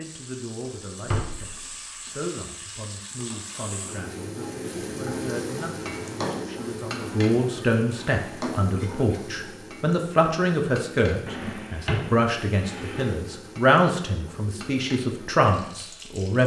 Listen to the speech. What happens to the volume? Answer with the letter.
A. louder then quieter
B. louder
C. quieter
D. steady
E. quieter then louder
B.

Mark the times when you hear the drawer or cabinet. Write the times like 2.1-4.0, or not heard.
0.7-1.6, 5.9-8.6, 11.2-13.2.